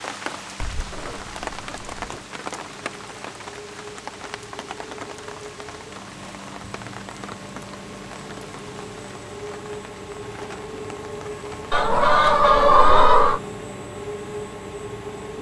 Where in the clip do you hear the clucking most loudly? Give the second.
13 s.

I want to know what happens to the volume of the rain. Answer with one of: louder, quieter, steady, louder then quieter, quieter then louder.
quieter.